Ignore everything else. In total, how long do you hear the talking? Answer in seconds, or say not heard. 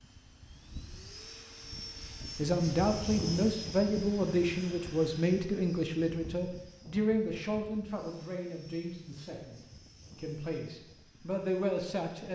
10 s.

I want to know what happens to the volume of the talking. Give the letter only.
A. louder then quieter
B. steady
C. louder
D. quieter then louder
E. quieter
D.